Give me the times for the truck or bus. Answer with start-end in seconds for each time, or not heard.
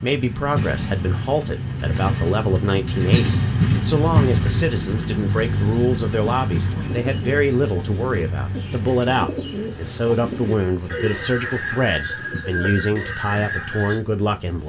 0.0-14.6.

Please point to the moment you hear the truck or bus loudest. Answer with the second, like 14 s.
4 s.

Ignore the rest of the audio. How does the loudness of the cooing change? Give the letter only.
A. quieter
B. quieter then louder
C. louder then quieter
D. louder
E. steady
D.